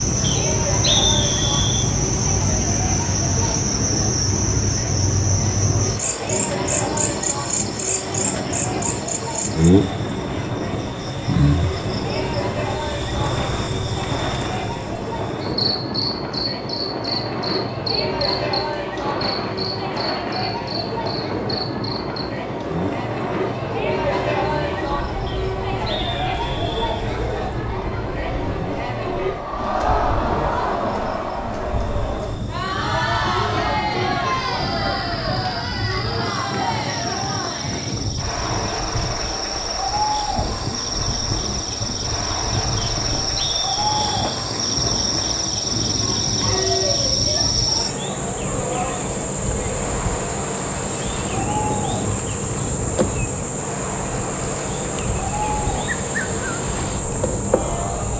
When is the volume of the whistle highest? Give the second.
1 s.